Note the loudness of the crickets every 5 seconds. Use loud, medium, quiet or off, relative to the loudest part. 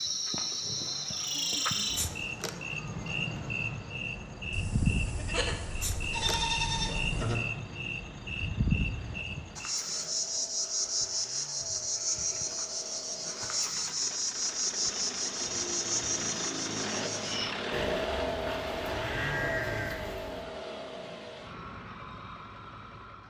loud, loud, loud, loud, off.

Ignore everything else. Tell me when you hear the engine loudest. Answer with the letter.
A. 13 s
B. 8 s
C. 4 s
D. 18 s
D.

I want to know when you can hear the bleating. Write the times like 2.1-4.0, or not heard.
4.5-7.5, 17.7-20.4.